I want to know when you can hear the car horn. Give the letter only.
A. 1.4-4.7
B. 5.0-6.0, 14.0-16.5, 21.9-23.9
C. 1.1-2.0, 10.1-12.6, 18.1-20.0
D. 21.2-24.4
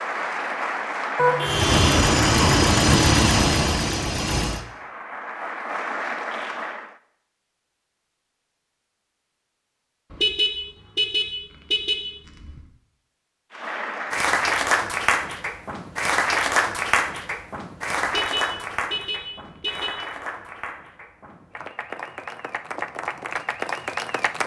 C.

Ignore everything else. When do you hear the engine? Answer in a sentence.
You can hear the engine from 1.4 to 4.7 s.